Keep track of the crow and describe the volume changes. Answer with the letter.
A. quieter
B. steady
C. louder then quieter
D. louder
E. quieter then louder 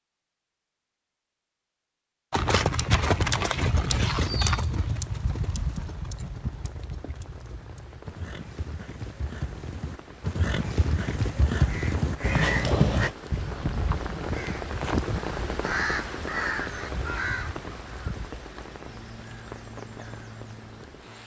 A.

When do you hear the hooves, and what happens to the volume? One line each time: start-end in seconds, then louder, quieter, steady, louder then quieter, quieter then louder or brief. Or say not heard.
2.3-13.2 quieter then louder.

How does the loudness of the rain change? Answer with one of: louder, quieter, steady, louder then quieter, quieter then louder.
louder then quieter.